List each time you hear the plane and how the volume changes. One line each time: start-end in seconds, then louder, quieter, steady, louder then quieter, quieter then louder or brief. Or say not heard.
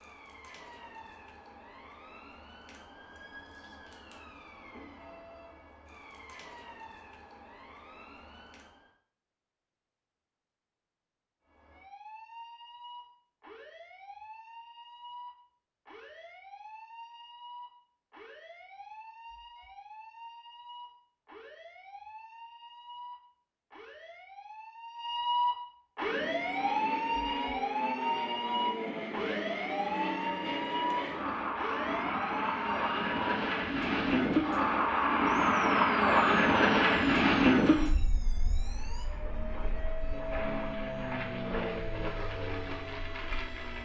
25.9-43.8 louder then quieter.